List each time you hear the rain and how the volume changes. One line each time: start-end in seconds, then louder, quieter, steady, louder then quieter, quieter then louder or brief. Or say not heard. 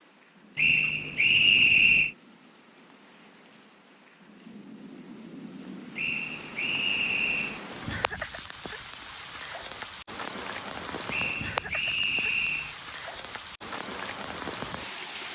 0.0-15.3 louder.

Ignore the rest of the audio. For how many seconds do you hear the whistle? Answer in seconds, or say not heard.
5 s.